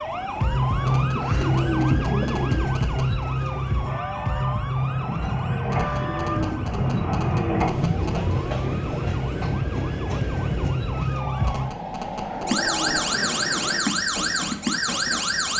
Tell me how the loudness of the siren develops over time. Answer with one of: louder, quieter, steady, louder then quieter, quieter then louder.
quieter then louder.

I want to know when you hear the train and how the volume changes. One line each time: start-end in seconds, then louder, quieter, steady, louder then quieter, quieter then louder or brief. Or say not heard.
0.0-15.5 louder then quieter.